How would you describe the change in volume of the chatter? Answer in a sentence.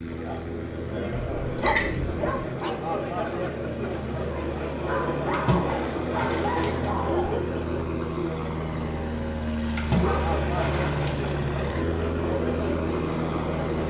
The volume of the chatter stays about the same.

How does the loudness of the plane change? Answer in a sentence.
The loudness of the plane goes up.